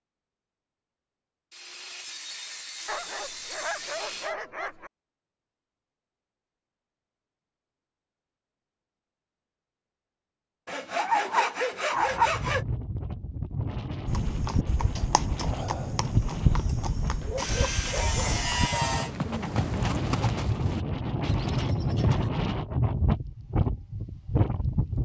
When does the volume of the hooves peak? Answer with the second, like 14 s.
16 s.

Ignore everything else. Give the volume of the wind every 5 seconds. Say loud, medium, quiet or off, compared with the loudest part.
off, off, medium, medium, loud.